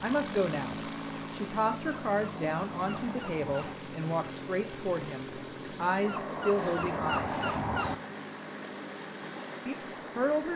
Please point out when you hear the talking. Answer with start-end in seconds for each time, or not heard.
0.0-7.5, 9.7-10.5.